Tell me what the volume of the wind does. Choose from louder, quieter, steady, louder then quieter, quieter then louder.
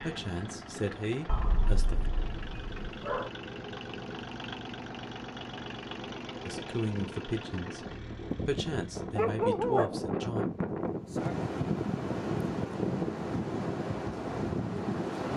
louder.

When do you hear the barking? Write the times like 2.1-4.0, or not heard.
1.2-3.3, 8.3-9.9.